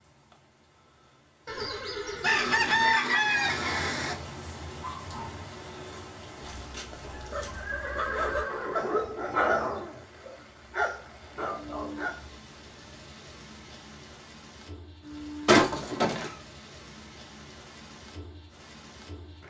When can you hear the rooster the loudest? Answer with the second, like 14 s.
3 s.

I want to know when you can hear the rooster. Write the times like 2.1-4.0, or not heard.
2.2-4.2.